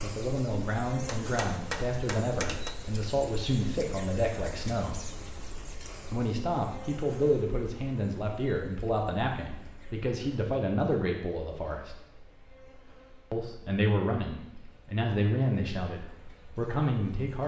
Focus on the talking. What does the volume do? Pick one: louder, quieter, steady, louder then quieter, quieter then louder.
steady.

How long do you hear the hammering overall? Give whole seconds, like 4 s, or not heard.
2 s.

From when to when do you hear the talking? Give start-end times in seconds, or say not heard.
0.0-5.0, 6.1-11.9, 13.3-17.4.